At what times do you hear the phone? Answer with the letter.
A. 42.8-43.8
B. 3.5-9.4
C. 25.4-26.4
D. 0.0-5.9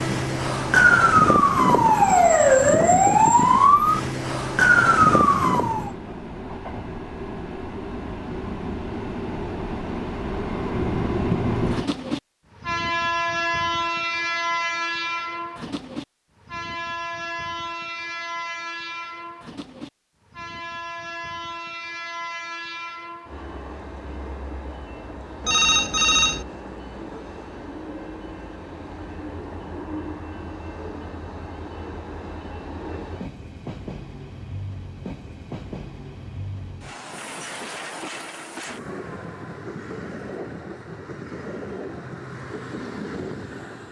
C.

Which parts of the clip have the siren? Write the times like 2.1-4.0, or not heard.
0.0-5.9.